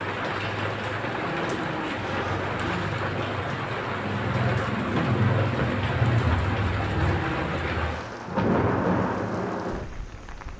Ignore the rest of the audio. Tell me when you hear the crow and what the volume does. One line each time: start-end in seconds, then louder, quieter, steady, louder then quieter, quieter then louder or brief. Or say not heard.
not heard.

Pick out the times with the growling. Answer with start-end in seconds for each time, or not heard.
1.0-3.0, 6.8-7.5.